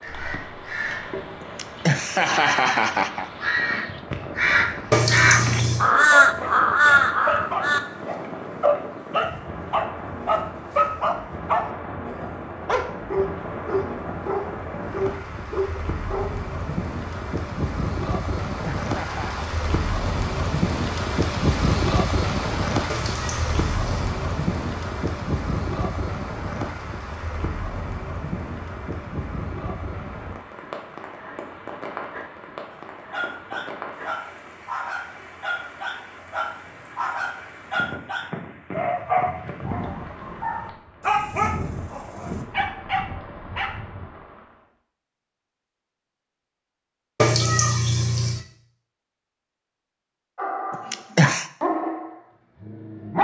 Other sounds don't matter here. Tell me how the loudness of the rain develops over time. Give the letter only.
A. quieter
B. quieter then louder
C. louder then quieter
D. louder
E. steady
C.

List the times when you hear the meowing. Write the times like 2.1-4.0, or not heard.
4.9-5.9, 22.9-24.1, 47.1-48.5.